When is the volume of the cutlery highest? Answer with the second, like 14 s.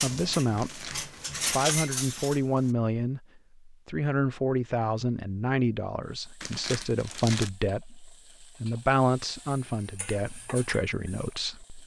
2 s.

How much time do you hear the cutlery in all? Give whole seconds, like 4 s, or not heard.
3 s.